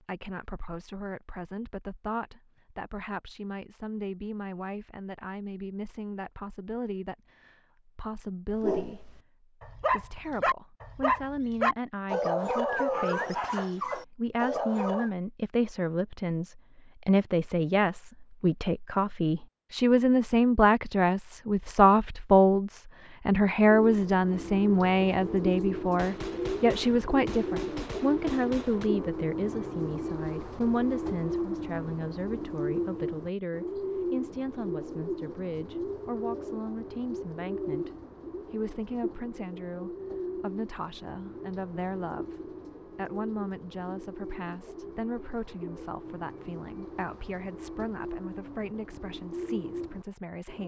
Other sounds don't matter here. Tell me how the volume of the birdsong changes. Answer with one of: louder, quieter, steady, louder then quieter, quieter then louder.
quieter.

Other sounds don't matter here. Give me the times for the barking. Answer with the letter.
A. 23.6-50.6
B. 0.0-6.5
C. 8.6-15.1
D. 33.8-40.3
C.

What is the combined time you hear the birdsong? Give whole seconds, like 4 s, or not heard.
27 s.